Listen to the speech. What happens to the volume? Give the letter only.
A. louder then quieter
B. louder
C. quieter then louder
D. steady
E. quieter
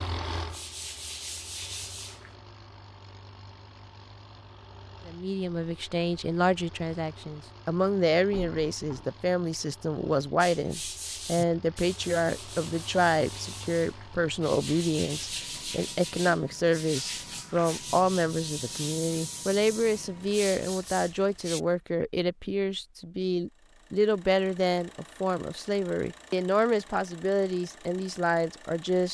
D.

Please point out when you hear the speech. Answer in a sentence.
The speech can be heard from 5.0 to 29.0 s.